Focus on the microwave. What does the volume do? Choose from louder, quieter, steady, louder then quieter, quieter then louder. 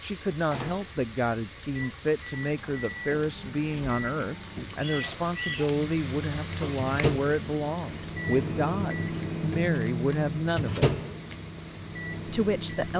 louder.